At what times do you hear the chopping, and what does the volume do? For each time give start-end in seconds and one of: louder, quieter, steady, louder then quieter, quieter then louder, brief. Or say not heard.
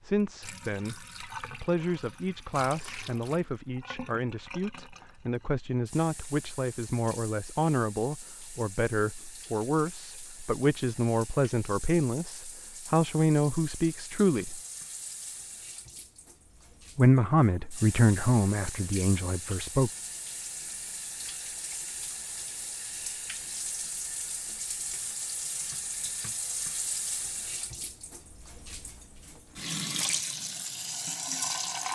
not heard.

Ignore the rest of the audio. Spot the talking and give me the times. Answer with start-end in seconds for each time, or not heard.
0.0-14.6, 16.9-19.9.